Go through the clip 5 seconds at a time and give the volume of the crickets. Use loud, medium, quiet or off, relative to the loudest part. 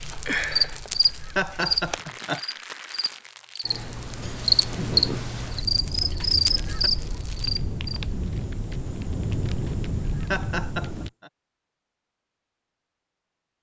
loud, loud, off.